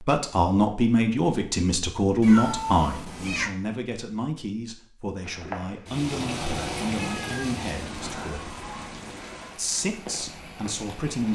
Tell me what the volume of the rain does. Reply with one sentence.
The loudness of the rain goes down.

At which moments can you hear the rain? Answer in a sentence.
The rain can be heard from 5.2 to 11.3 s.